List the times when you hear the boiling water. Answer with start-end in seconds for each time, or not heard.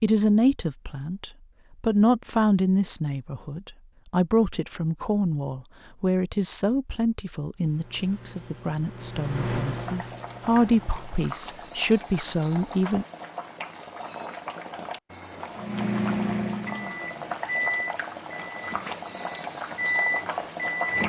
9.6-21.0.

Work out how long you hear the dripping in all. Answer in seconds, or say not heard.
not heard.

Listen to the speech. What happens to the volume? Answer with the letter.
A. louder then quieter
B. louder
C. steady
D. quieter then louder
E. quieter
D.